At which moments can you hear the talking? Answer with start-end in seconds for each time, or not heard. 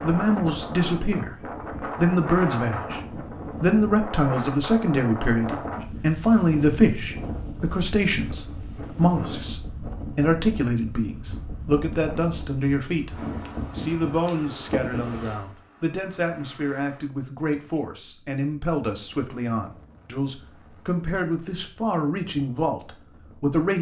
0.0-1.3, 1.9-3.0, 3.6-13.1, 13.8-23.7.